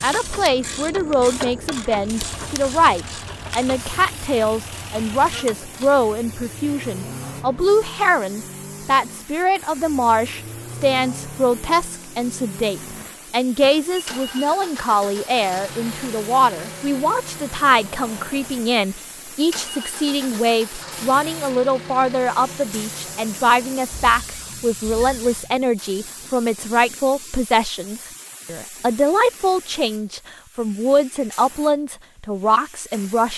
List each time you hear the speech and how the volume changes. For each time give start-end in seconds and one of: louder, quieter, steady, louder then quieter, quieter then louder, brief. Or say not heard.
0.0-33.3 steady.